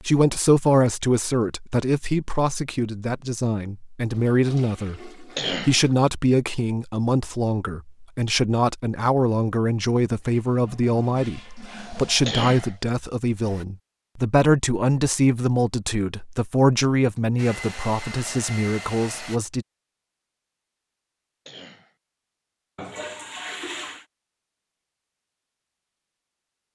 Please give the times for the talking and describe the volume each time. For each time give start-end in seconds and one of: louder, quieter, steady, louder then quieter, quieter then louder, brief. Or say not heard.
0.0-19.6 steady.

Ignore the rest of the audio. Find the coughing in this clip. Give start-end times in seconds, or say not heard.
5.3-5.8, 12.2-12.8, 21.4-21.9.